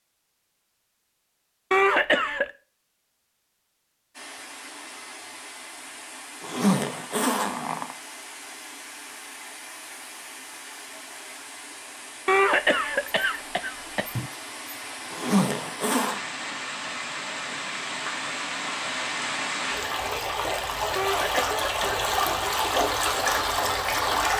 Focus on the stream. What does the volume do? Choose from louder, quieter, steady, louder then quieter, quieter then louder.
louder.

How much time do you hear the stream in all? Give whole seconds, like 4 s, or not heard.
20 s.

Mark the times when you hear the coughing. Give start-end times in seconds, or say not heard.
1.7-2.5, 12.2-14.3, 20.9-22.1.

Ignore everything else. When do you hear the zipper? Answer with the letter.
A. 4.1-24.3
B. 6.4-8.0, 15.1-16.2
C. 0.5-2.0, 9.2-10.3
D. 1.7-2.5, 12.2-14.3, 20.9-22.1
B.